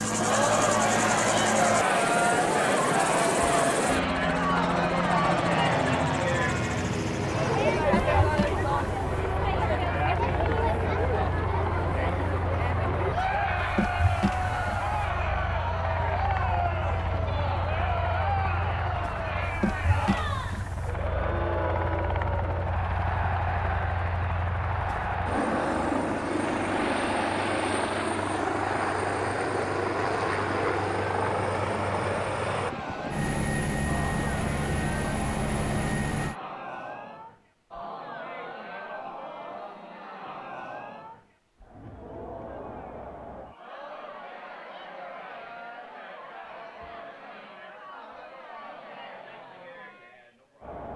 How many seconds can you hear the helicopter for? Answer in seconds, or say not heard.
36 s.